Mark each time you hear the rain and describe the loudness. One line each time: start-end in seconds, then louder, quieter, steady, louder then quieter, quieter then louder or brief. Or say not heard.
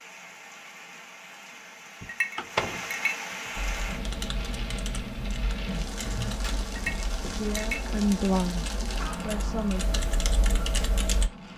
0.0-11.5 louder.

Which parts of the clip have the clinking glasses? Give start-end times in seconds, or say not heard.
2.0-3.1, 6.8-7.8.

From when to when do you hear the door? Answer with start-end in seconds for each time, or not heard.
2.0-2.9, 6.0-7.5.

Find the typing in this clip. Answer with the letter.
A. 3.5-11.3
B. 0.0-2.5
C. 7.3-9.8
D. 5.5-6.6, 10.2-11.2
A.